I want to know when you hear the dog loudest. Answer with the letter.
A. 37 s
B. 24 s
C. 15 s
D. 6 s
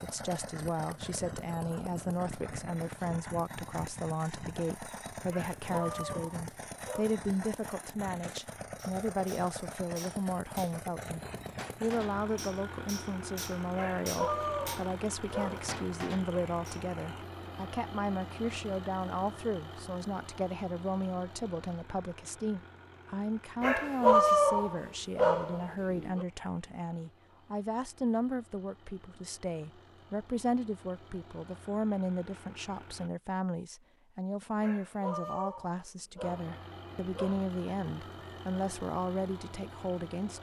B.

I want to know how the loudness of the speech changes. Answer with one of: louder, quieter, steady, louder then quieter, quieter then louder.
steady.